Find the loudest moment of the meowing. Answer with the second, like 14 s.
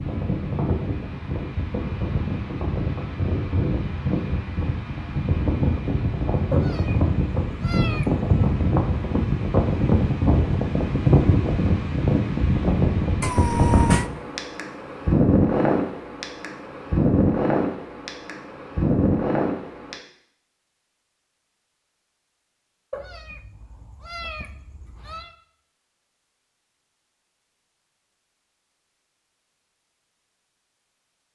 14 s.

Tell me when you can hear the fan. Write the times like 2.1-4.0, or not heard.
0.0-20.0.